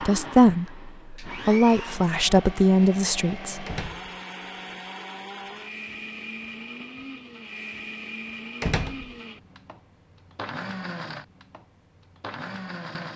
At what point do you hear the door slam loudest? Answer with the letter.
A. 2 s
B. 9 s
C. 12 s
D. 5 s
B.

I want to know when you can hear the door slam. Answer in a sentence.
The door slam can be heard from 3.6 to 4.2 s and from 8.6 to 9.2 s.